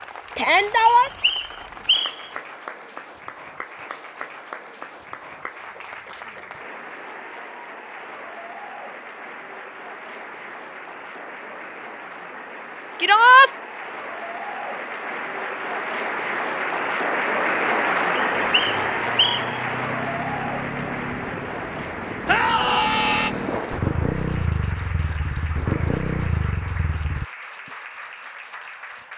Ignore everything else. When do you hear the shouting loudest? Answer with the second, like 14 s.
13 s.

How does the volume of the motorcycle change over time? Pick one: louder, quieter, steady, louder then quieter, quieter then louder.
louder.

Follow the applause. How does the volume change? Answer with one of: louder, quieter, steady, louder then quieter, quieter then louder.
louder then quieter.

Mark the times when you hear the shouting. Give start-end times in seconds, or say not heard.
0.3-1.1, 12.9-13.5, 22.2-23.3.